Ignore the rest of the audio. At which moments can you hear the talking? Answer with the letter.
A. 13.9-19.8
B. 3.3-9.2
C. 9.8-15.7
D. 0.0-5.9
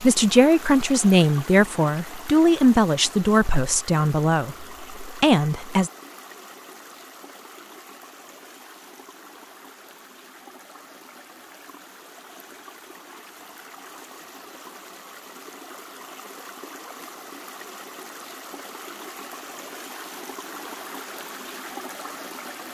D.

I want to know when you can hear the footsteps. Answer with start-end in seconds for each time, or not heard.
not heard.